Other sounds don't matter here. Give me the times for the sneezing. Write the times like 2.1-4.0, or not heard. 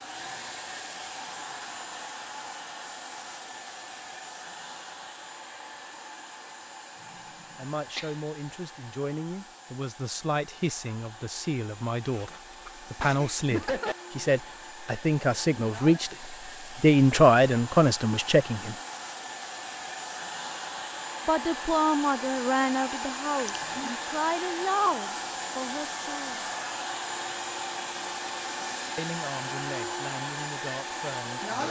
7.1-8.2, 11.9-13.9, 23.4-23.9.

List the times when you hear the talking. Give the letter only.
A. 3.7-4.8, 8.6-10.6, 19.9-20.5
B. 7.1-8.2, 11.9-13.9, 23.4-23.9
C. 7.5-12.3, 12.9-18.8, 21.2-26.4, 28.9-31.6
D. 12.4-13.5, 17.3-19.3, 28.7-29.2
C.